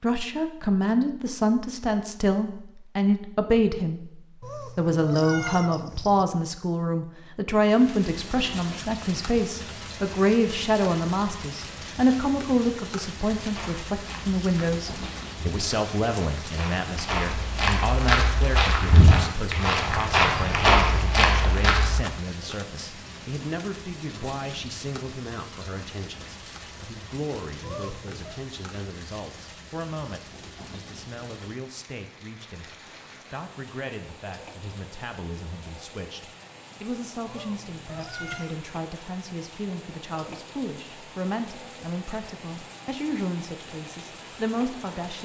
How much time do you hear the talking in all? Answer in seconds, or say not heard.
45 s.